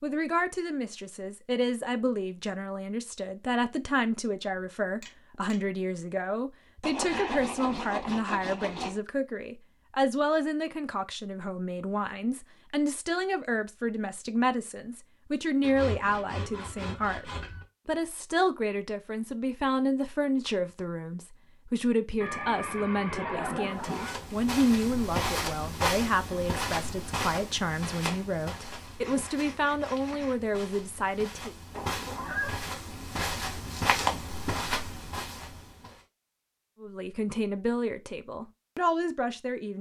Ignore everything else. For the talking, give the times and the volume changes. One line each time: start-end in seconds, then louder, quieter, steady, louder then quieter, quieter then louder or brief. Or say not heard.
0.0-31.6 steady
36.8-39.7 brief.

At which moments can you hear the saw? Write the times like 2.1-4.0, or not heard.
6.8-8.9, 15.6-17.6, 27.9-30.5.